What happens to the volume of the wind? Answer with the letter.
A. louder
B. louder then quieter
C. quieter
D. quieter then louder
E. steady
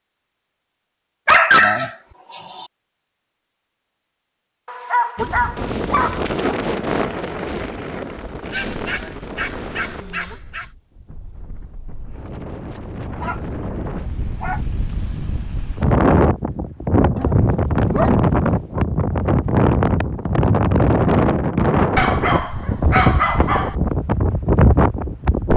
D.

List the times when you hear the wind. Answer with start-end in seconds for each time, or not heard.
5.2-25.5.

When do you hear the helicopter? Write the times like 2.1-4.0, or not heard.
not heard.